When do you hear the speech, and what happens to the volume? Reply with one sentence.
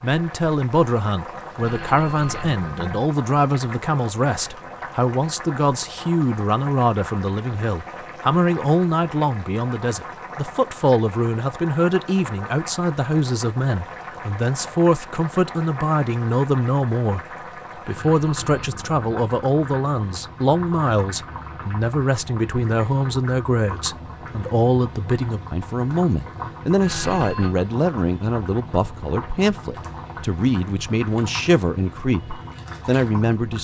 You can hear the speech from 0.0 to 33.5 s, at a steady volume.